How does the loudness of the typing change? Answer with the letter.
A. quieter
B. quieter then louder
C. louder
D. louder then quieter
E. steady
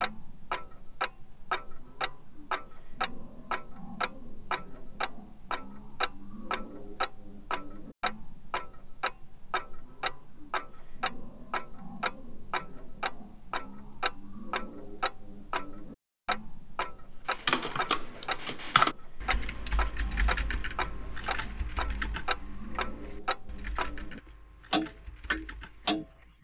A.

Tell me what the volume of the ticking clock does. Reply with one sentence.
The volume of the ticking clock stays about the same.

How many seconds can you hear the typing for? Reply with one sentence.
The typing can be heard for 9 seconds in total.